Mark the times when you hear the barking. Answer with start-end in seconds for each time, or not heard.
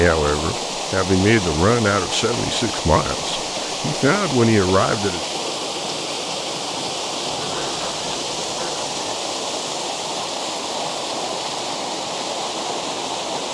7.3-9.2.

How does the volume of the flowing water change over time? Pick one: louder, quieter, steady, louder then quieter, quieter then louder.
steady.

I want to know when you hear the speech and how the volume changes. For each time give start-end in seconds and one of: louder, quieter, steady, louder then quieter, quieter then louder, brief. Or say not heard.
0.0-5.2 quieter then louder.